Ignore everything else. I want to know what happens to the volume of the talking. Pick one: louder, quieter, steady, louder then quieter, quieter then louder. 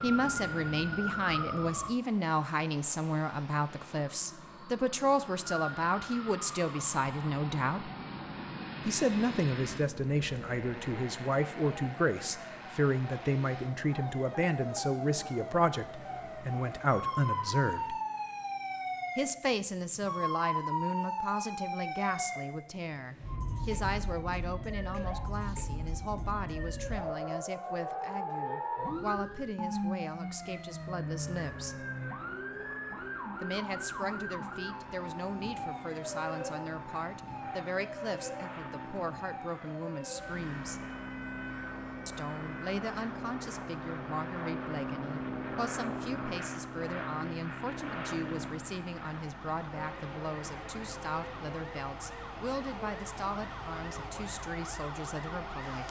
quieter.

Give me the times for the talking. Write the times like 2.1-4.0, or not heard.
0.0-7.9, 8.8-18.0, 19.1-31.9, 33.4-40.8, 42.0-55.8.